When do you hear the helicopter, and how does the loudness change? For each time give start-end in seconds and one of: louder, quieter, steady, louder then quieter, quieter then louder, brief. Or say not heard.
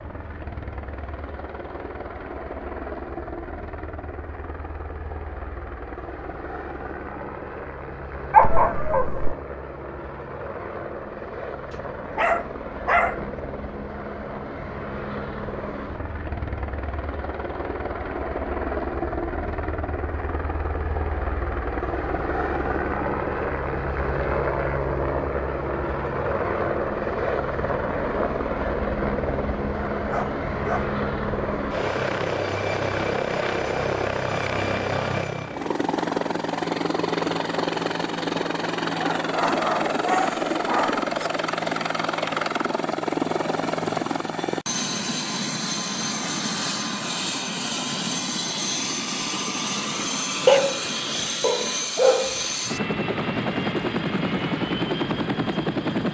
0.0-56.0 louder.